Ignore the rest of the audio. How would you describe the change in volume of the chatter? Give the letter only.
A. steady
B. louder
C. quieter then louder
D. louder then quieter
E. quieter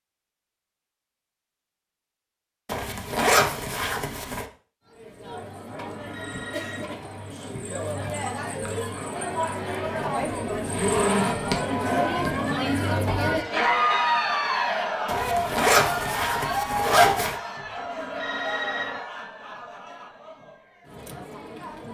D.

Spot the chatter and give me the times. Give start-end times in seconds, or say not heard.
4.8-21.8.